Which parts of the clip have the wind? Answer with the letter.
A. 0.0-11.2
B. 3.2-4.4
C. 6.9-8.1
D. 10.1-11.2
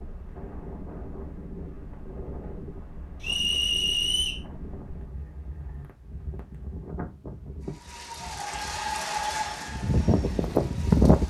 A.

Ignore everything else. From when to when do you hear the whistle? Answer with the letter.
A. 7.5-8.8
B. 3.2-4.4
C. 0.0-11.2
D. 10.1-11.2
B.